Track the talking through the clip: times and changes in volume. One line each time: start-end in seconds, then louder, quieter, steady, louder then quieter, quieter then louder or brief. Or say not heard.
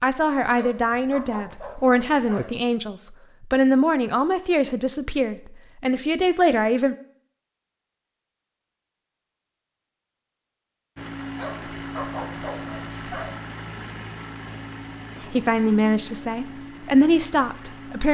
0.0-7.0 steady
15.3-18.0 brief.